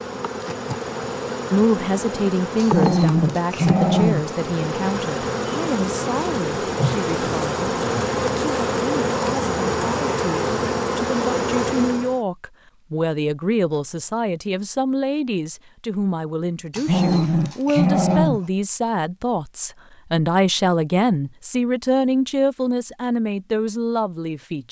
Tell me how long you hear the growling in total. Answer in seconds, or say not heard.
3 s.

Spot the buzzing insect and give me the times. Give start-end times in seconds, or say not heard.
0.0-12.2.